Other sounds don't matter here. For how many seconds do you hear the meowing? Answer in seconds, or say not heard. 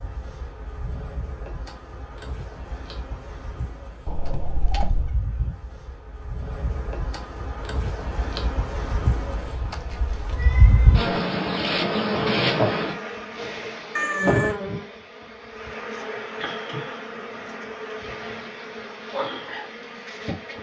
3 s.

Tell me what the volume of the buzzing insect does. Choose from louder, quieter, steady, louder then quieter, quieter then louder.
louder then quieter.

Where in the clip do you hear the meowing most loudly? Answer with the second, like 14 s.
14 s.